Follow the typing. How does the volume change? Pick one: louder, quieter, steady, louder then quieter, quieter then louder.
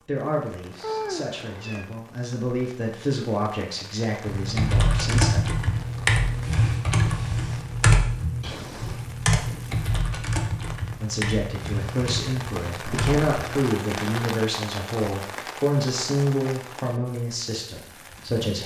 quieter.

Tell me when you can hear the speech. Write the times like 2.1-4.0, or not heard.
0.0-5.4, 11.0-18.6.